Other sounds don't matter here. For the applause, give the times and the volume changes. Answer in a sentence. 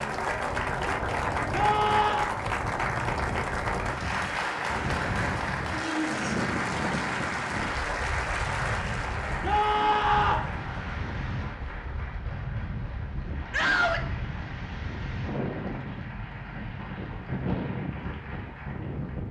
You can hear the applause from 0.0 to 19.2 s, getting quieter.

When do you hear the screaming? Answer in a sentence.
The screaming can be heard from 1.5 to 2.3 s, from 9.4 to 10.5 s and from 13.5 to 14.1 s.